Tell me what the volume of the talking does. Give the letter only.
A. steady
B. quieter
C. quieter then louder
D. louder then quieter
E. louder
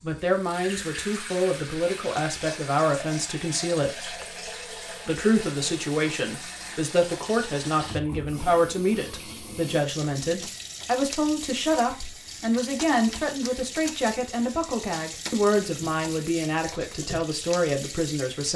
A.